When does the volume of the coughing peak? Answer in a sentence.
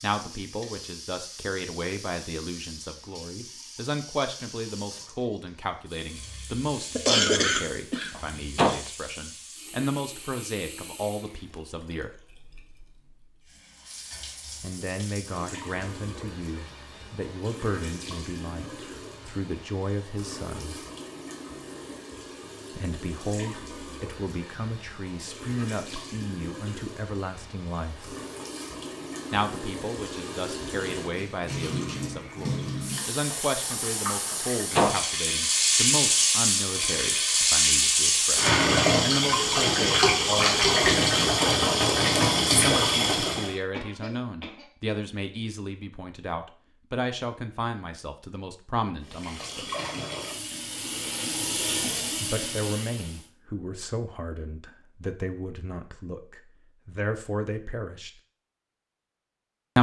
The loudest moment of the coughing is at 7 seconds.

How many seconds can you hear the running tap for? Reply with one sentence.
You can hear the running tap for 48 seconds altogether.